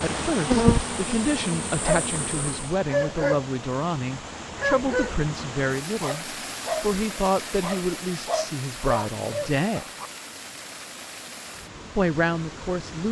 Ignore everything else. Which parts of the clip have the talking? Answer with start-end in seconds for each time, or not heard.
0.0-9.9, 11.9-13.0.